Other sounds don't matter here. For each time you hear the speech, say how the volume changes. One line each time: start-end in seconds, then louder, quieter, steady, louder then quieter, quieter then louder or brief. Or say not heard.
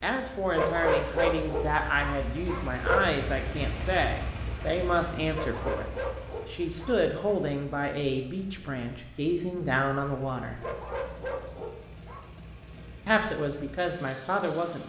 0.0-10.7 steady
13.1-14.8 brief.